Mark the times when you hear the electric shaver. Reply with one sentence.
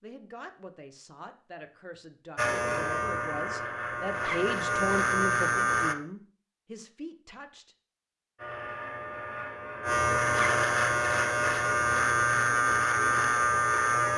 You can hear the electric shaver from 2.4 to 6.0 s and from 8.3 to 14.1 s.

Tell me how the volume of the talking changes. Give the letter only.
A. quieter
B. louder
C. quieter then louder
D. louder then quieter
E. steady
D.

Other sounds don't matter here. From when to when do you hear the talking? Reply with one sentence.
The talking can be heard from 0.0 to 7.8 s.